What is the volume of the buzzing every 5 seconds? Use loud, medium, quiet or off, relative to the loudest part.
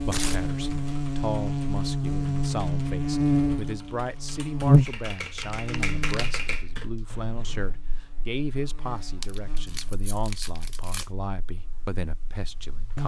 loud, quiet, quiet.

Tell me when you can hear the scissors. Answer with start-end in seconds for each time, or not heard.
7.0-7.8.